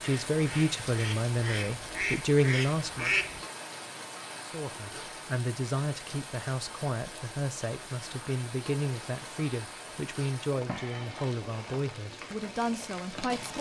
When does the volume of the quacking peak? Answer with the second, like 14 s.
3 s.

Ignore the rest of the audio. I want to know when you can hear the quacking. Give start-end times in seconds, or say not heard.
0.0-3.4.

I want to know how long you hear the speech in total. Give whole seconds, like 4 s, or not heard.
12 s.